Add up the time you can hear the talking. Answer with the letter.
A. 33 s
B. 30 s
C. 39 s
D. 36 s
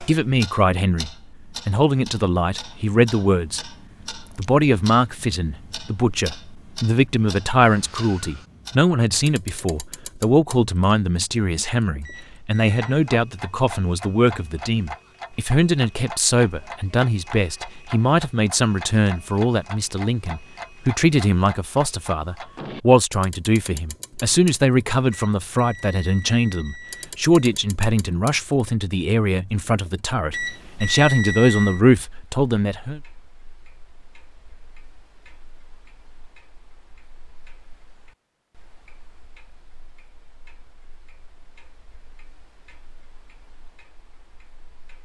A.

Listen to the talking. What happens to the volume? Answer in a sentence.
The loudness of the talking stays about the same.